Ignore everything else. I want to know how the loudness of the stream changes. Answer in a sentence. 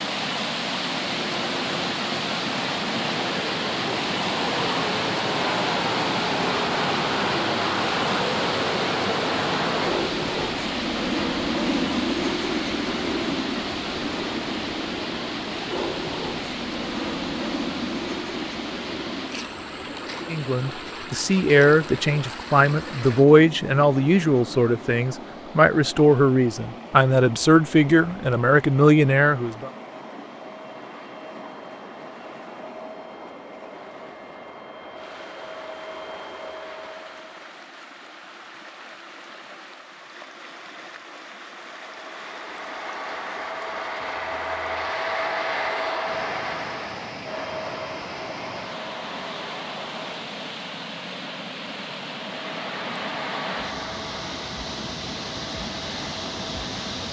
The volume of the stream goes down, then up.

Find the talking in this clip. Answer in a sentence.
You can hear the talking from 20.2 to 29.7 s.